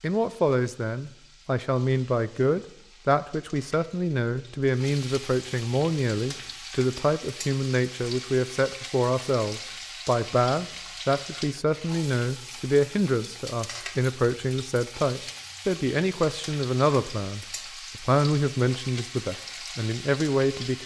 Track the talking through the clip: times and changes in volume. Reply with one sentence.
You can hear the talking from 0.0 to 20.8 s, at a steady volume.